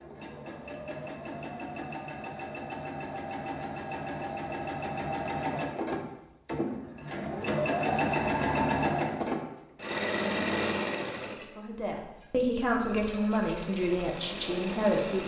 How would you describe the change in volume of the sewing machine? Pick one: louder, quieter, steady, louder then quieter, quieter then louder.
louder then quieter.